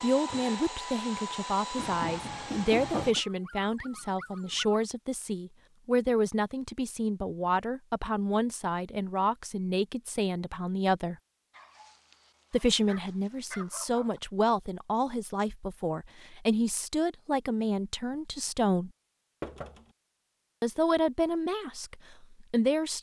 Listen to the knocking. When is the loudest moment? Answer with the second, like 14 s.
3 s.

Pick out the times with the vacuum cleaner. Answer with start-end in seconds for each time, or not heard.
0.0-3.1.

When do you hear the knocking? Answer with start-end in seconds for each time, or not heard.
1.8-3.2, 19.4-19.9.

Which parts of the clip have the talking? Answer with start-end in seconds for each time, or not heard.
0.0-11.2, 12.5-18.9, 20.6-22.9.